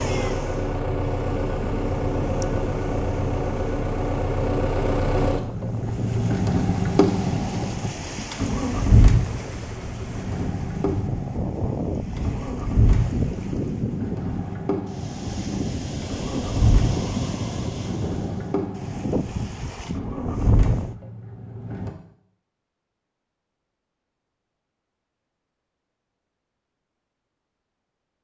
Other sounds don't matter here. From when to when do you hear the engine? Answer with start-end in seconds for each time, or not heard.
0.0-21.9.